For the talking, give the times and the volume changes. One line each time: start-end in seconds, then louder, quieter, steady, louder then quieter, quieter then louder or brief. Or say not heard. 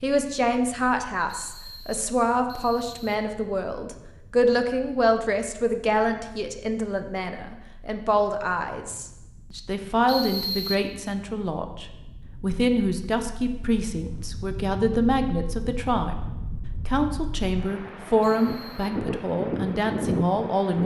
0.0-20.8 steady.